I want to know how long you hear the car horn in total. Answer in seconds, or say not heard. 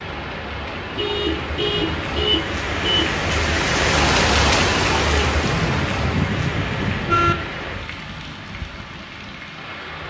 4 s.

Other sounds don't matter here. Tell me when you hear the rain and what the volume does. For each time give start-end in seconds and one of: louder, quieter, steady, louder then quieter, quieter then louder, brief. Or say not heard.
0.0-10.0 louder then quieter.